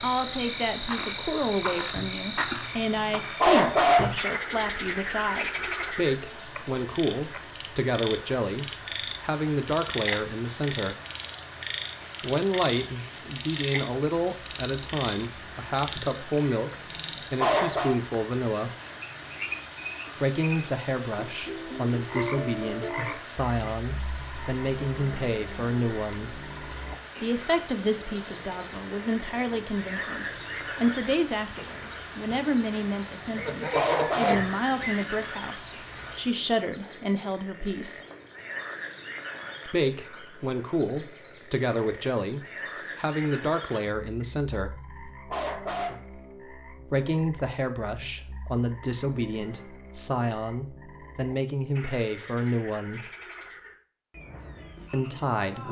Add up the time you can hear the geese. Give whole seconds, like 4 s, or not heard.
2 s.